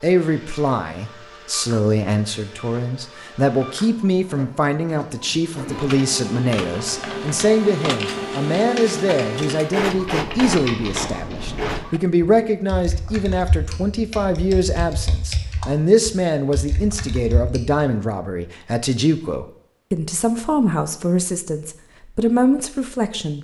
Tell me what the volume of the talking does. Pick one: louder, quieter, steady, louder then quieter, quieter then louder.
steady.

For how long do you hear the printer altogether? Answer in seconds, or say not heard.
12 s.